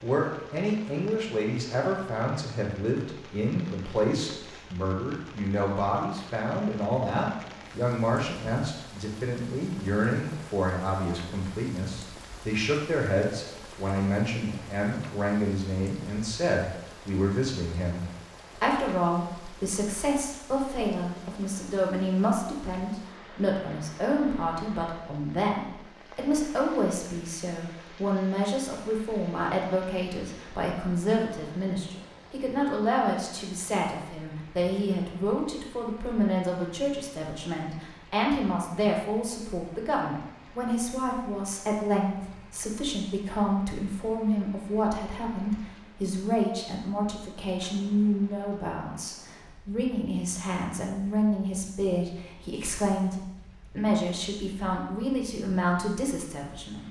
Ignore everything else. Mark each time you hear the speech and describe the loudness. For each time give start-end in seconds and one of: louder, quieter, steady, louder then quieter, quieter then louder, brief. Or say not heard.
0.0-56.8 steady.